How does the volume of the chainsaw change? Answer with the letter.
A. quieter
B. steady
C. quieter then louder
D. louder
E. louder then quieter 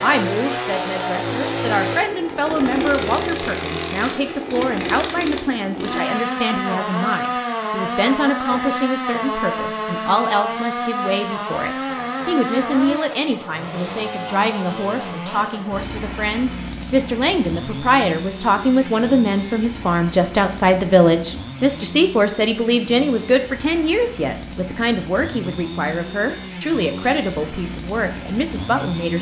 A.